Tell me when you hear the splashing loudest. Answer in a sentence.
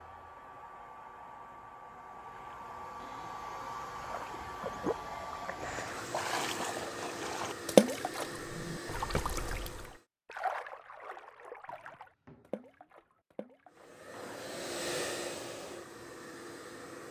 The loudest moment of the splashing is at 8 seconds.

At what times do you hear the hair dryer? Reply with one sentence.
You can hear the hair dryer from 0.0 to 10.1 s and from 13.7 to 17.0 s.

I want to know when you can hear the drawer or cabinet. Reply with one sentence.
You can hear the drawer or cabinet from 3.0 to 3.4 s, from 8.3 to 8.8 s and from 11.7 to 12.7 s.